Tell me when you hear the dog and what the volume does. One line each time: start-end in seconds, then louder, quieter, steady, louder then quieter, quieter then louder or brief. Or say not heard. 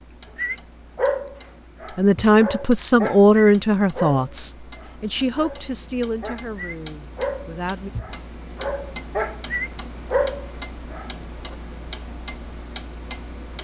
0.3-11.6 quieter then louder.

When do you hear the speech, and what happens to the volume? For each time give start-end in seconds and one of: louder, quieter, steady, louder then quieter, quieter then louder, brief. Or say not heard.
1.9-7.9 quieter.